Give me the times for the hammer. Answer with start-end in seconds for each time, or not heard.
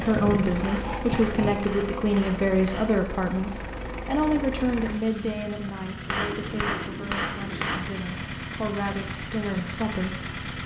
0.6-3.0, 6.0-7.8.